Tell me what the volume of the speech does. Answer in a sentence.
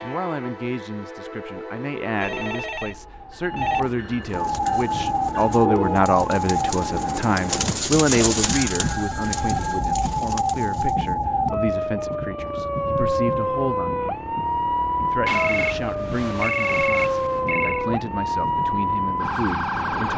The volume of the speech goes up, then down.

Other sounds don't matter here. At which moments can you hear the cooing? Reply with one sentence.
You can hear the cooing from 4.3 to 11.2 s.